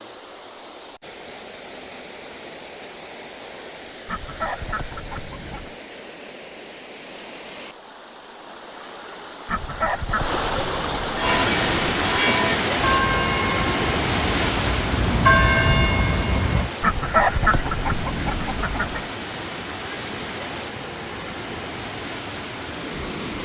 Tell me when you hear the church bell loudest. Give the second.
15 s.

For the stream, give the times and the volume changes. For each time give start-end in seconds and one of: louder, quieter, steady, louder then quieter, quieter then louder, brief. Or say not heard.
0.0-23.4 louder then quieter.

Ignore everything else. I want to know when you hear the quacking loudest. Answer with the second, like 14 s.
17 s.